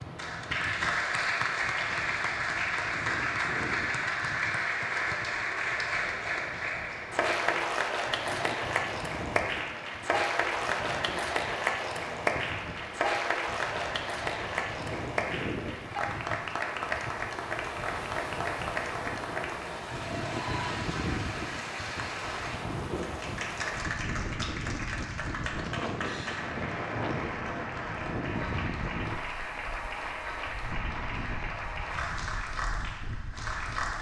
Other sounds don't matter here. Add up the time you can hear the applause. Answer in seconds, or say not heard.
34 s.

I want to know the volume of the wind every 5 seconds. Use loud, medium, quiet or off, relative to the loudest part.
medium, medium, medium, loud, loud, loud, medium.